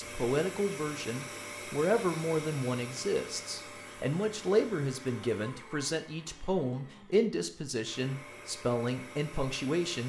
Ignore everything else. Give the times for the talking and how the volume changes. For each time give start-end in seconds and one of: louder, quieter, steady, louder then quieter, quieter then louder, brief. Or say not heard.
0.0-10.0 steady.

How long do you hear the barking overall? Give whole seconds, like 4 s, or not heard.
not heard.